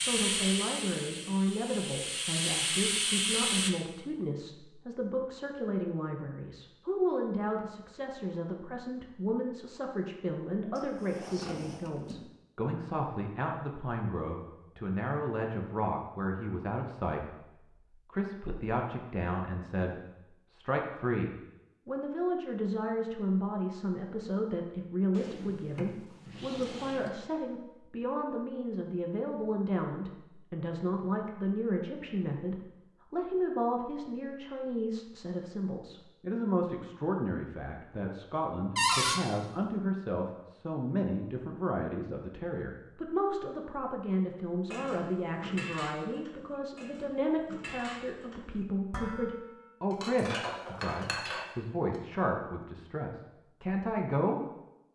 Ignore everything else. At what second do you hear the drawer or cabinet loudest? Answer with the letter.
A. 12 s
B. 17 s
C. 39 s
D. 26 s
C.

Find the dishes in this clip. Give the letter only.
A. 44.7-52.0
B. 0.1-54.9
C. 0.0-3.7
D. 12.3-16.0
A.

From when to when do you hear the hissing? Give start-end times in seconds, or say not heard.
0.0-3.7.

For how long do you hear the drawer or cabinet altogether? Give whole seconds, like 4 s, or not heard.
4 s.